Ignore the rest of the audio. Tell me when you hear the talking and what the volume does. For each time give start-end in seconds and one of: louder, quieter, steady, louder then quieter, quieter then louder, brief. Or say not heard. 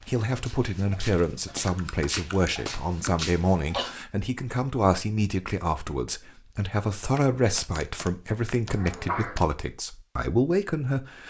0.1-11.2 steady.